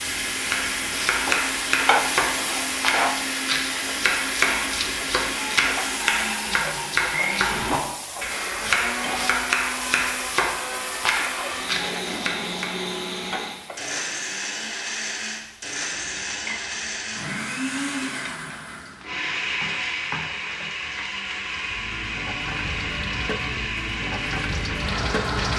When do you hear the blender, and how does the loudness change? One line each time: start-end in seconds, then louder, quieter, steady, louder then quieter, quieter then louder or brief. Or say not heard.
0.0-25.5 steady.